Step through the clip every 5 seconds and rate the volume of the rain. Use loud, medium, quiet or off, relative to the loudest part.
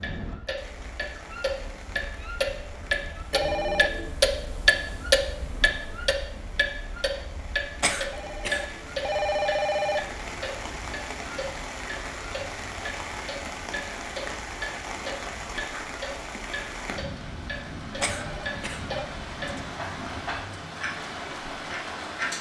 medium, medium, loud, loud, loud.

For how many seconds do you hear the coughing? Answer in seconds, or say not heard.
2 s.